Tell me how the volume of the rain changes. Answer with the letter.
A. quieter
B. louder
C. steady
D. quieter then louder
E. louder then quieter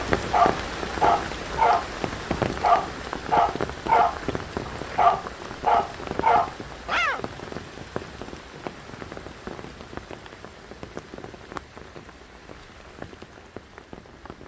A.